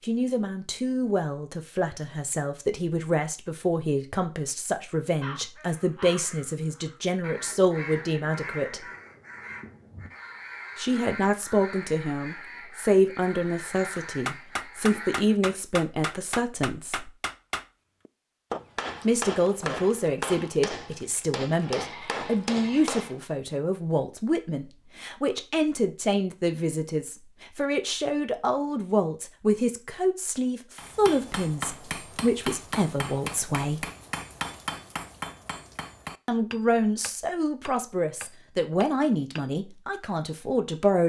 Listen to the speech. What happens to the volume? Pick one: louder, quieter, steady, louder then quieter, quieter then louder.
steady.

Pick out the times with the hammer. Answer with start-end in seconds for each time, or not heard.
13.9-23.1, 30.8-39.5.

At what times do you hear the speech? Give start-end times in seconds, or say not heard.
0.0-8.8, 10.8-17.1, 19.0-33.9, 36.2-41.0.